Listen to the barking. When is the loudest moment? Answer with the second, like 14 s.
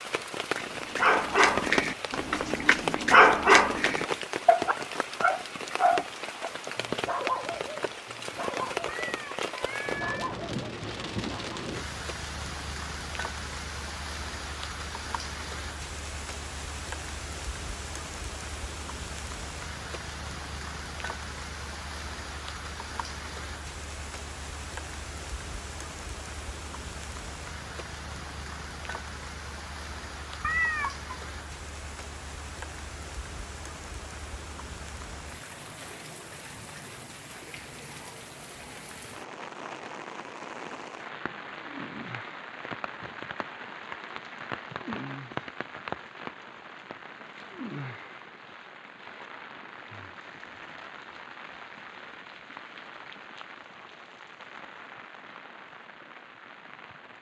3 s.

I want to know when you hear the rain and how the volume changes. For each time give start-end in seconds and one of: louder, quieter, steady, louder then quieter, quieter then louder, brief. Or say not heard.
0.0-57.1 quieter.